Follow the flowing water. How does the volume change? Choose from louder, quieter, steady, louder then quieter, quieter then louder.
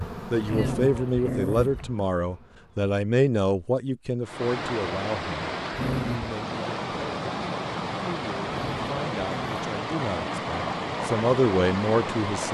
steady.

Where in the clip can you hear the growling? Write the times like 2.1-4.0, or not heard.
0.5-1.9, 5.7-6.3, 8.4-9.7.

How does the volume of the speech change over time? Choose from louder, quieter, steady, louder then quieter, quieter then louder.
quieter then louder.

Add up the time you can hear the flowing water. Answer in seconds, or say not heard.
8 s.